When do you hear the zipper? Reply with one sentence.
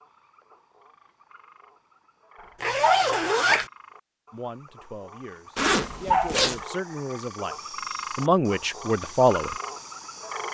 The zipper can be heard from 2.6 to 3.7 s and from 5.5 to 6.6 s.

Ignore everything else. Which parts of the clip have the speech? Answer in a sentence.
You can hear the speech from 4.3 to 7.5 s and from 8.2 to 9.6 s.